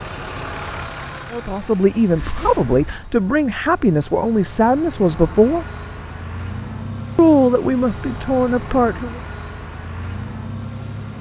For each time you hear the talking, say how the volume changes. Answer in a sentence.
The talking can be heard from 1.3 to 5.7 s, at a steady volume; and briefly from 7.2 to 9.2 s.